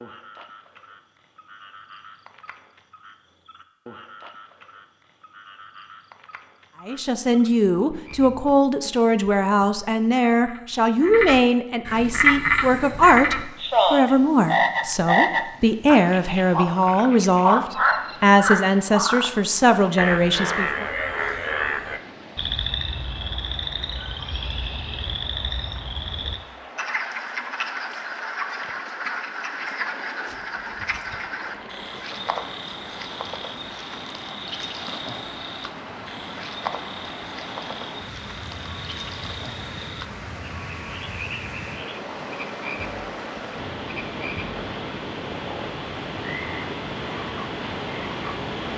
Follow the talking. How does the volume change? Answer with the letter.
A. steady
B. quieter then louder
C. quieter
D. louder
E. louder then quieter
A.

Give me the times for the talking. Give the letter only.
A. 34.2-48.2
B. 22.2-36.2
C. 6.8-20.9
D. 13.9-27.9
C.